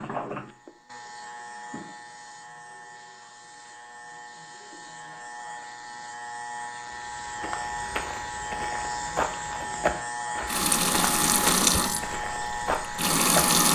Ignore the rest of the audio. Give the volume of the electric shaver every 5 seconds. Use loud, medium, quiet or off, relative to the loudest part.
medium, loud, loud.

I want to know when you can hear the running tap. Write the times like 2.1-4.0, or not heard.
10.4-13.7.